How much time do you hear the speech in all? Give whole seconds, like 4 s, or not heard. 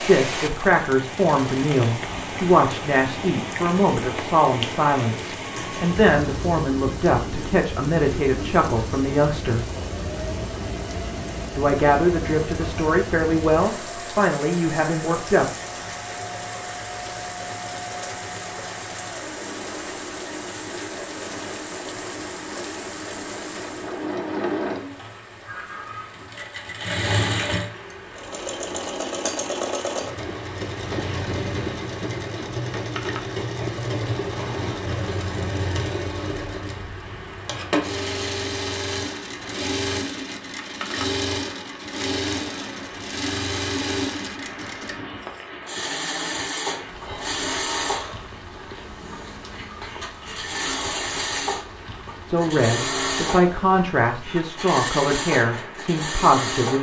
18 s.